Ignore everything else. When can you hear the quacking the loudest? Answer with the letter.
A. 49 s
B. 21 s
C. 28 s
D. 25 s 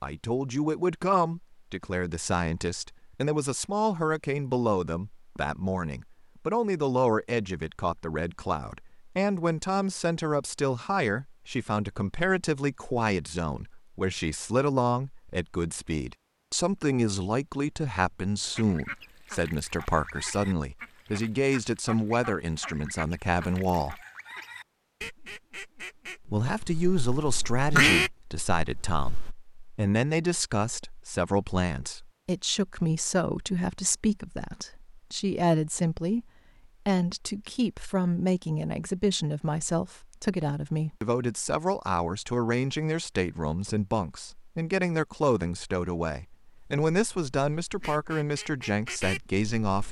C.